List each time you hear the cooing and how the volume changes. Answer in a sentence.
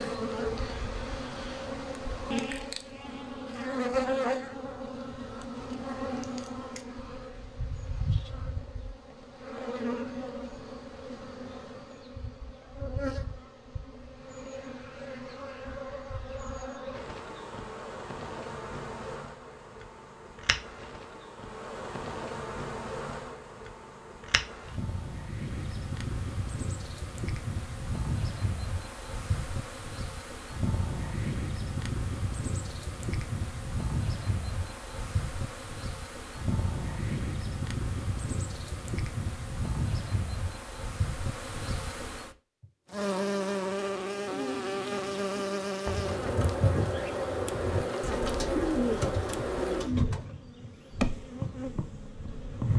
You can hear the cooing from 44.2 to 50.2 s, getting louder.